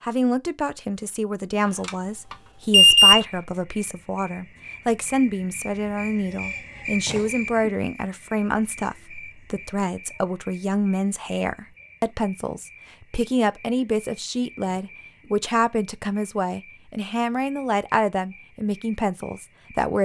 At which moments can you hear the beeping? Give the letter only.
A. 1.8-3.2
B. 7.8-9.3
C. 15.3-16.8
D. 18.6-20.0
A.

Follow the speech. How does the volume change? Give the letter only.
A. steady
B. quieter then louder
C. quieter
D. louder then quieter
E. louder
A.